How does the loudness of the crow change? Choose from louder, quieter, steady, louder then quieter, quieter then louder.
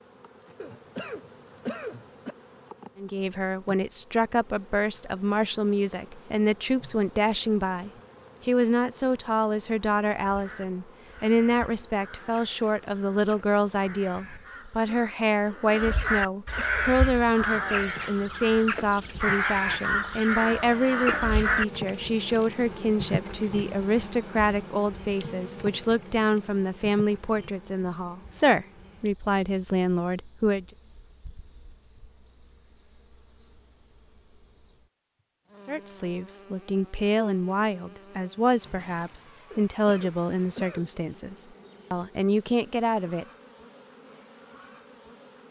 louder.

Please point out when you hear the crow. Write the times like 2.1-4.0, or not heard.
10.2-21.6.